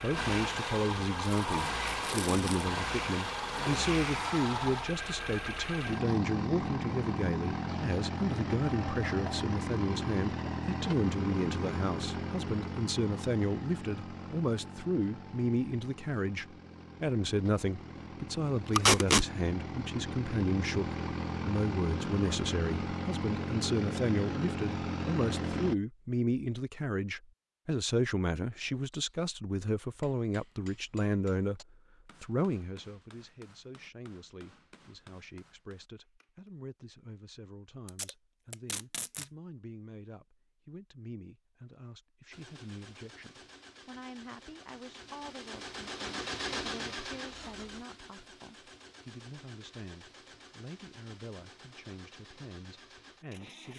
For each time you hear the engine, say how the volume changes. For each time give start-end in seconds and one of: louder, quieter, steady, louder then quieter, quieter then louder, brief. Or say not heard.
0.0-25.8 quieter then louder
42.3-53.7 louder then quieter.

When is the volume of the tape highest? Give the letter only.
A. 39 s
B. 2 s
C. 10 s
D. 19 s
D.